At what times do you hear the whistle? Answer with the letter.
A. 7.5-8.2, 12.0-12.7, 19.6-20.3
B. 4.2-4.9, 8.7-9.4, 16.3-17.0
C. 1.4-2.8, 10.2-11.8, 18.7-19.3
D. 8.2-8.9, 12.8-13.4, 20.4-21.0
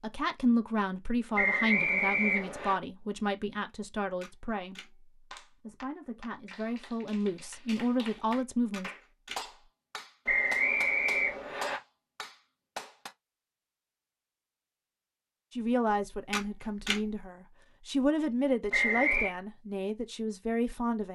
C.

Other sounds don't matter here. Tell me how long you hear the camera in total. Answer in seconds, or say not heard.
2 s.